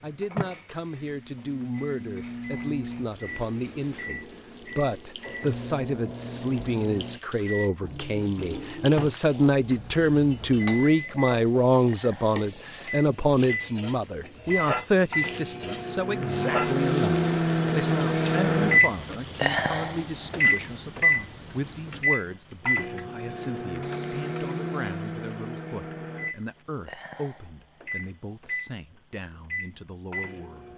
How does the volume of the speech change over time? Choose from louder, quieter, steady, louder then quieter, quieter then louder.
louder then quieter.